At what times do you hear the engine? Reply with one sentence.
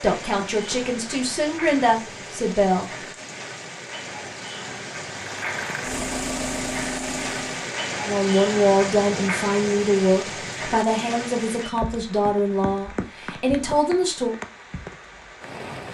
The engine can be heard from 5.1 to 7.7 s.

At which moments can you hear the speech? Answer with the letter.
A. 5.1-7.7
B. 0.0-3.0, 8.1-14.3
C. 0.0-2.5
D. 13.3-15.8
B.